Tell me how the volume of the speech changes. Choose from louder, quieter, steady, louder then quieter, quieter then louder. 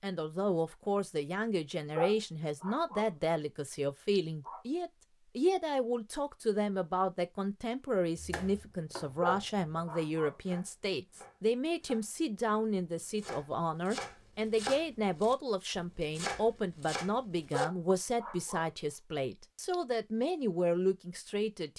steady.